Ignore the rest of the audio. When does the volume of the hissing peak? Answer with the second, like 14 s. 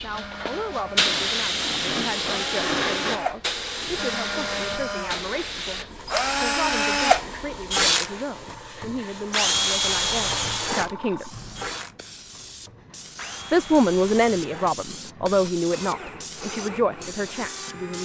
1 s.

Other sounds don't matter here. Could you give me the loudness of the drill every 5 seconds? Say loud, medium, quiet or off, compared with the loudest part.
medium, loud, medium, quiet.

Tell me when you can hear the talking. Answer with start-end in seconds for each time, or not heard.
0.0-11.3, 13.5-18.0.